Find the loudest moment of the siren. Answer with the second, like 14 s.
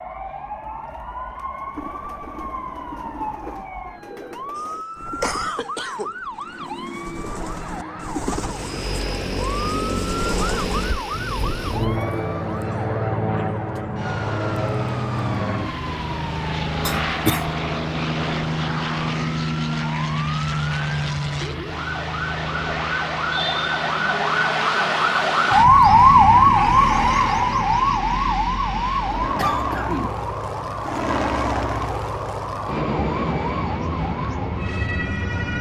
26 s.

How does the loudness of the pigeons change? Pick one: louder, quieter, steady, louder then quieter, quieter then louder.
louder.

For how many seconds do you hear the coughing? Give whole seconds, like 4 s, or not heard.
3 s.